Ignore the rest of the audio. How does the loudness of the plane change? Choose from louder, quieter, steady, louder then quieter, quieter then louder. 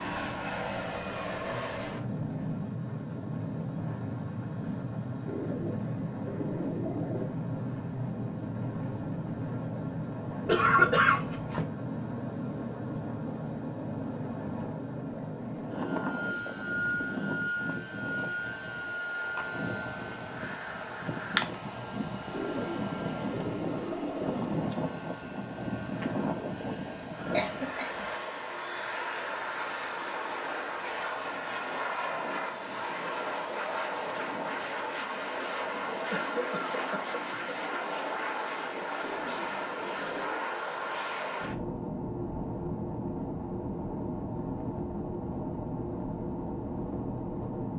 steady.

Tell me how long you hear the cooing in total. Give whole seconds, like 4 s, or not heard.
6 s.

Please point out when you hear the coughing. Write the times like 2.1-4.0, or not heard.
10.4-11.7, 27.3-28.1, 36.1-37.5.